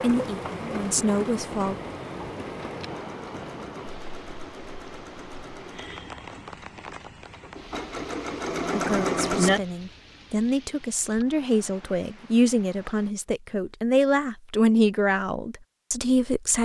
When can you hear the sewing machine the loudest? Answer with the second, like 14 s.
9 s.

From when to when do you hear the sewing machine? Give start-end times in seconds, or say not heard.
2.9-9.6.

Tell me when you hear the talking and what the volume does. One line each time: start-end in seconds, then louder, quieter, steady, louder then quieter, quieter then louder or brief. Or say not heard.
0.0-1.8 brief
8.7-16.5 louder.